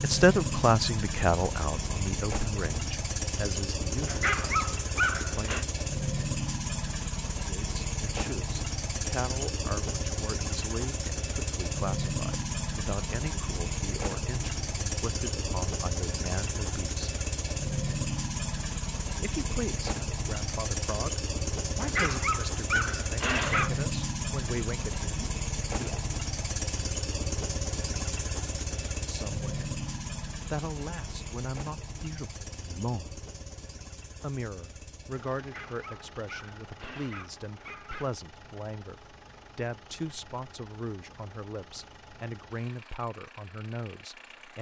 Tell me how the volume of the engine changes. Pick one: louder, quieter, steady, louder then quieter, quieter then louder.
quieter.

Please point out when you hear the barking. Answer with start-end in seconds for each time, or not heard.
4.0-5.7, 21.8-23.9, 35.4-38.1.